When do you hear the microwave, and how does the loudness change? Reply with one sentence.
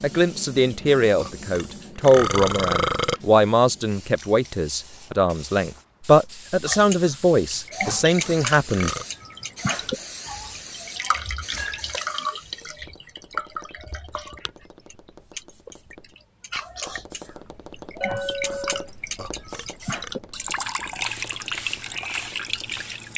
The microwave can't be heard in this clip.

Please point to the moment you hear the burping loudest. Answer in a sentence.
The volume of the burping peaks at 3 seconds.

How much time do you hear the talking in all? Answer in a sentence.
You can hear the talking for 9 seconds altogether.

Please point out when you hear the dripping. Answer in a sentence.
You can hear the dripping from 6.7 to 23.1 s.